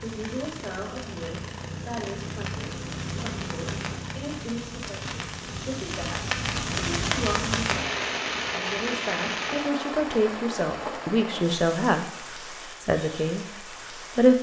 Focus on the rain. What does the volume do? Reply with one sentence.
The loudness of the rain goes up, then down.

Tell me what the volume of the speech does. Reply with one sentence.
The volume of the speech goes up.